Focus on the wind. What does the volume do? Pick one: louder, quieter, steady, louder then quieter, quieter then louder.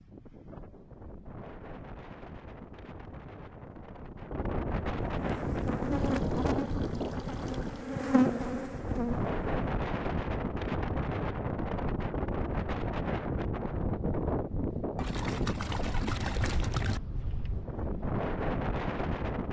louder.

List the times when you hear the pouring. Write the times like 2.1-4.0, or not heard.
5.9-7.9, 14.9-17.0.